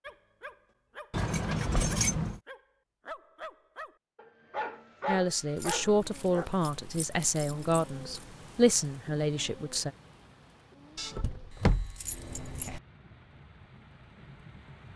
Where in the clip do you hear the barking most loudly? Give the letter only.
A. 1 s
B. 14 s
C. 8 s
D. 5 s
D.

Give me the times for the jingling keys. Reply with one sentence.
You can hear the jingling keys from 1.1 to 2.4 s, from 5.5 to 8.2 s and from 10.9 to 12.8 s.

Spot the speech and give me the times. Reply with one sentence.
The speech can be heard from 5.0 to 9.9 s.